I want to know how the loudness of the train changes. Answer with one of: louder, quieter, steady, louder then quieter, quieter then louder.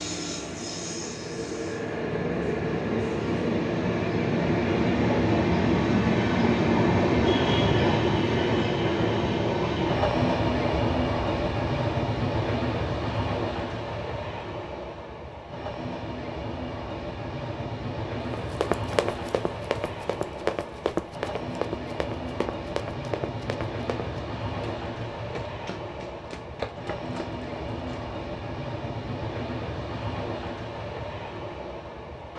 quieter.